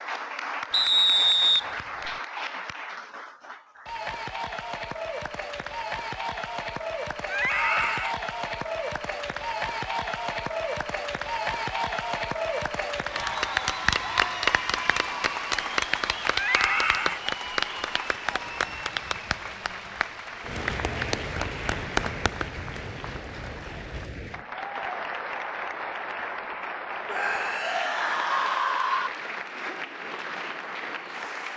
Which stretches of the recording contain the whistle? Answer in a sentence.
The whistle can be heard from 0.7 to 2.1 s.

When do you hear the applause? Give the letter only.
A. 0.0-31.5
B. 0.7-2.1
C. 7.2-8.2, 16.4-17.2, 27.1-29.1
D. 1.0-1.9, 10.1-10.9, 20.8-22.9
A.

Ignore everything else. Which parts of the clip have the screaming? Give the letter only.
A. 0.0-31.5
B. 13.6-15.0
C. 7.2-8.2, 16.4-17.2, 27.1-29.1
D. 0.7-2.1
C.